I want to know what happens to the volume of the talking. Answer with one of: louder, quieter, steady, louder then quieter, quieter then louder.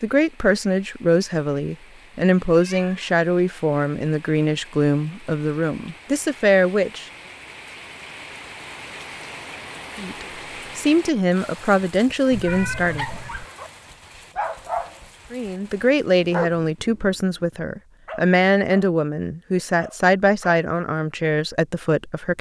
steady.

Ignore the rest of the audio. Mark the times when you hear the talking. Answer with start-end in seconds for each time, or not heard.
0.0-7.0, 9.9-13.1, 15.3-22.3.